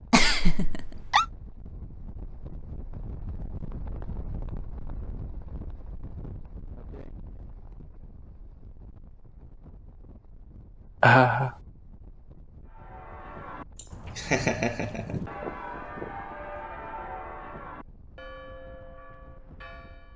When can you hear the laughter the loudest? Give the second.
11 s.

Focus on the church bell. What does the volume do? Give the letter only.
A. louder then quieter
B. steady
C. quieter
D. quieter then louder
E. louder
A.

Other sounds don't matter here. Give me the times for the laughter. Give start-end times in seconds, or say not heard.
0.1-1.2, 11.0-11.5, 13.8-15.2.